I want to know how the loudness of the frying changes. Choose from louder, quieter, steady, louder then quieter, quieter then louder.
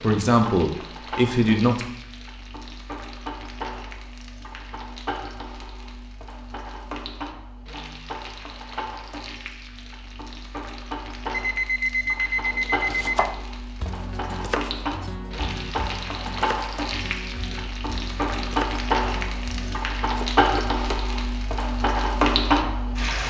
louder.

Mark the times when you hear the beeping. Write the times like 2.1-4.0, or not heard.
11.3-13.3.